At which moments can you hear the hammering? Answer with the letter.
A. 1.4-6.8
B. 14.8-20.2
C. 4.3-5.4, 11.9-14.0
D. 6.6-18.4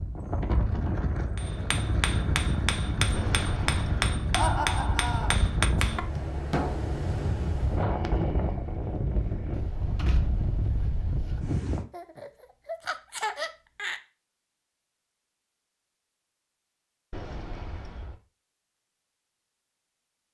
A.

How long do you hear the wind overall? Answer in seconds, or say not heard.
12 s.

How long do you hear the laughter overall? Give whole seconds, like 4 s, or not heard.
3 s.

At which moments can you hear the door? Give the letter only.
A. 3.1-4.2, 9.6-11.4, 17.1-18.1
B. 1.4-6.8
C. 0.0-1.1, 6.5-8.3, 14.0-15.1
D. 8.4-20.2
A.